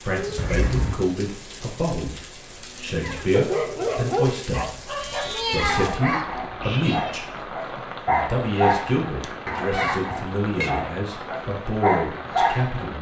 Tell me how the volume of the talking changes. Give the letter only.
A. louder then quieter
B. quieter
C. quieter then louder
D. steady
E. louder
D.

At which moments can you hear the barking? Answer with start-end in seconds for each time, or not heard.
3.0-12.9.